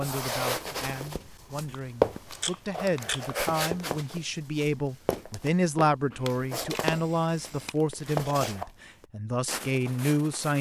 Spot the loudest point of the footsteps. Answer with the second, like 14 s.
2 s.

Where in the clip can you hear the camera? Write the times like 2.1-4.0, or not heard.
1.7-3.3, 6.1-7.8.